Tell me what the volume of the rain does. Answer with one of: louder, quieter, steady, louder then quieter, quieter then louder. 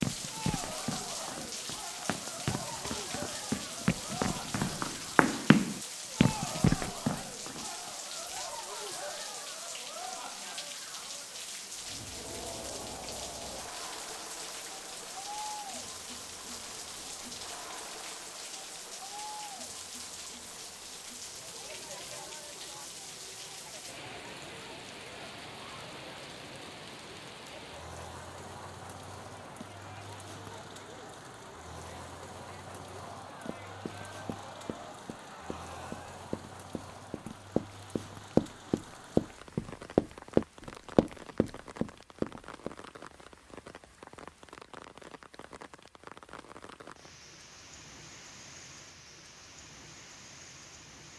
quieter.